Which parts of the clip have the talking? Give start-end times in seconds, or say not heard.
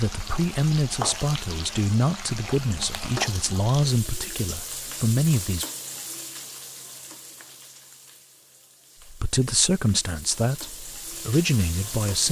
0.0-5.7, 9.1-12.2.